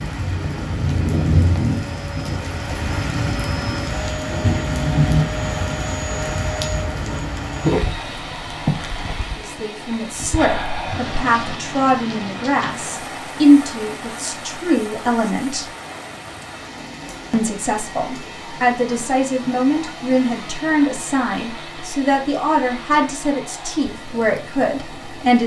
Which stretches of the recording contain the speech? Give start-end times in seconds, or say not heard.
9.3-15.7, 17.3-25.4.